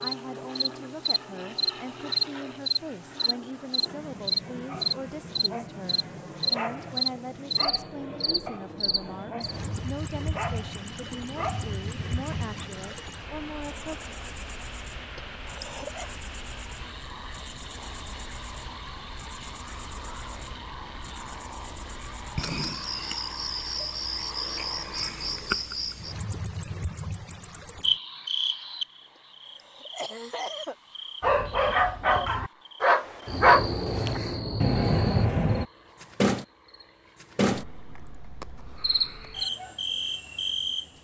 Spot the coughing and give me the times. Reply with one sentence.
You can hear the coughing from 15.2 to 16.1 s and from 29.6 to 30.8 s.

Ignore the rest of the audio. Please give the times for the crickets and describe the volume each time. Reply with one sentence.
You can hear the crickets from 0.0 to 40.9 s, getting quieter then louder.